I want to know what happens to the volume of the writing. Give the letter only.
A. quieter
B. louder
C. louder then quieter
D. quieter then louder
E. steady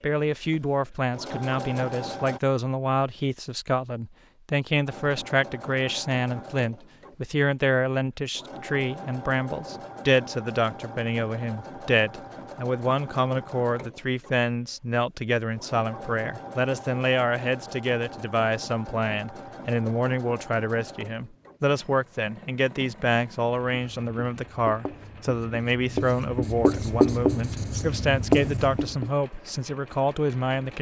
B.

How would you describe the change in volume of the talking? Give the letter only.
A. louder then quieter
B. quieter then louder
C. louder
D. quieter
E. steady
E.